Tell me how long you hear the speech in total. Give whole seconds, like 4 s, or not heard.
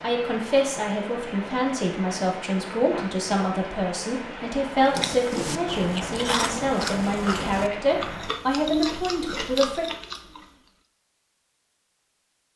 10 s.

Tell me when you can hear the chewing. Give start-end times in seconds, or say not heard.
4.8-10.4.